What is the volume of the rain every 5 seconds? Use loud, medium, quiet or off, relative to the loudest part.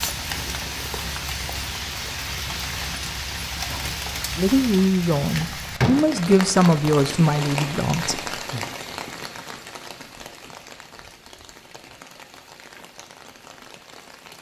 loud, loud, quiet.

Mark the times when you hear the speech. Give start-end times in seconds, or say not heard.
4.3-8.3.